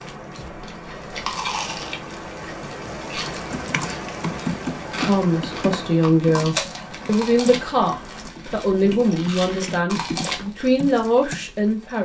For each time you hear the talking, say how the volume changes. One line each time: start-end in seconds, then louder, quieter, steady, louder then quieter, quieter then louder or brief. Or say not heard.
5.0-11.9 steady.